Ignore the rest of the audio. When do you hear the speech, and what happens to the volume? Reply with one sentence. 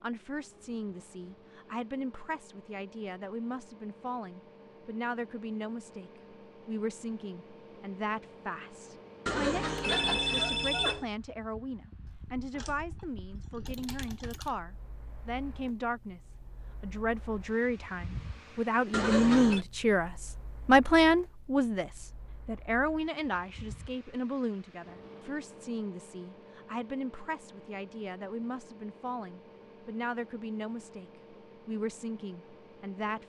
You can hear the speech from 0.0 to 16.2 s, at a steady volume; and from 16.8 to 33.2 s, getting quieter.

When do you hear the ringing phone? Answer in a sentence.
The ringing phone can be heard from 9.2 to 11.1 s and from 18.9 to 19.6 s.